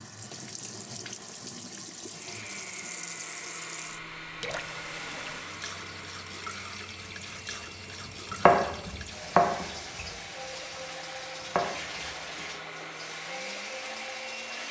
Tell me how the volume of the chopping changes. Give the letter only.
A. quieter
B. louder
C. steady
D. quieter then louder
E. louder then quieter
D.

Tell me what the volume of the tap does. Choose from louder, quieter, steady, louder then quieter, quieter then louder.
steady.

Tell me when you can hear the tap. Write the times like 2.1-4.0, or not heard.
0.0-14.6.